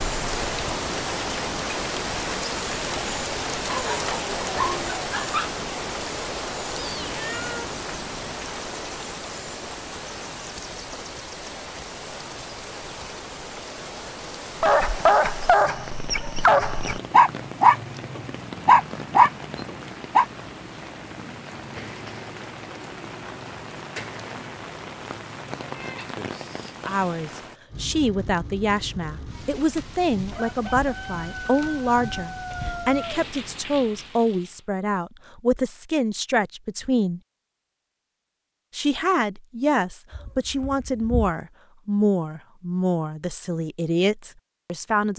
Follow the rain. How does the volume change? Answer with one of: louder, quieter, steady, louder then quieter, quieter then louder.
quieter.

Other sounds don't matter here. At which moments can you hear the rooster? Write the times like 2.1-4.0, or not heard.
30.3-33.2.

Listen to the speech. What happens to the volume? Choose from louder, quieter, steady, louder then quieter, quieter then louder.
steady.